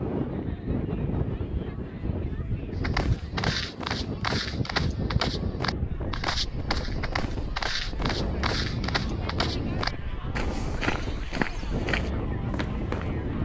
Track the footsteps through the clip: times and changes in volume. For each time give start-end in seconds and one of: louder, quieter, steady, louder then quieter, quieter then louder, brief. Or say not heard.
2.8-13.1 steady.